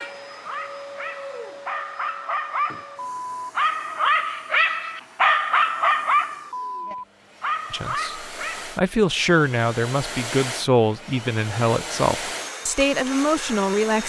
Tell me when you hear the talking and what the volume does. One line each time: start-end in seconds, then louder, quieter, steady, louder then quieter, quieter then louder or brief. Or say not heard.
7.7-14.0 steady.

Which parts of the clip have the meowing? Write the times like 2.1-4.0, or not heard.
not heard.